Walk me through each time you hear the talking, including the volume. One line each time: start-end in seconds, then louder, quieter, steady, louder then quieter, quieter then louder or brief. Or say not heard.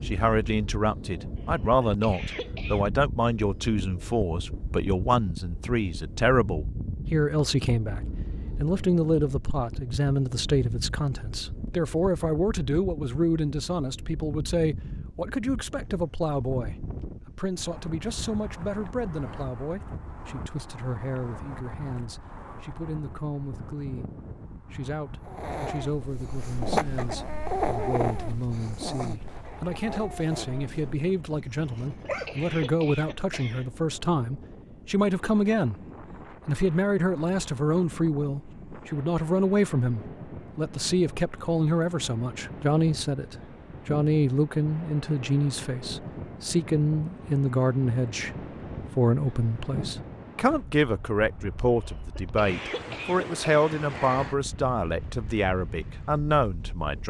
0.0-35.8 quieter then louder
36.5-57.0 steady.